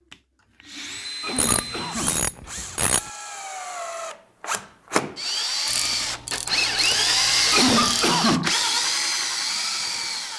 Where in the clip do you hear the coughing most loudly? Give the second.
8 s.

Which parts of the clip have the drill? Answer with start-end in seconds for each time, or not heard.
0.1-10.3.